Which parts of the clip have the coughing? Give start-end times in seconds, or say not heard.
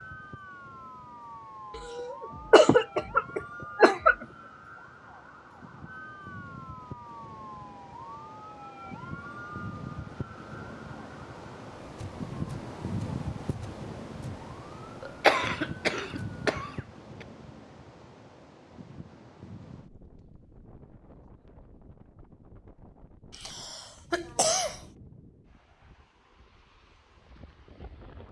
1.8-4.2, 15.0-16.7, 23.3-24.8.